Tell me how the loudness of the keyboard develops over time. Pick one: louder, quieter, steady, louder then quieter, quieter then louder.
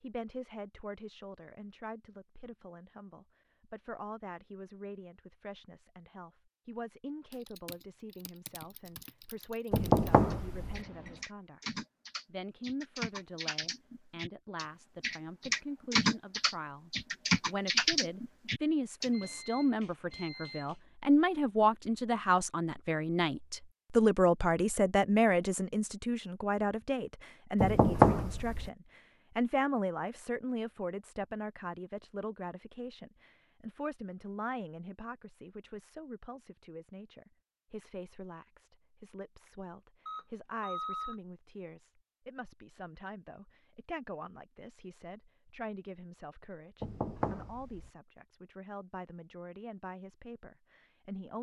louder.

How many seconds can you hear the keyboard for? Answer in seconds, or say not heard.
12 s.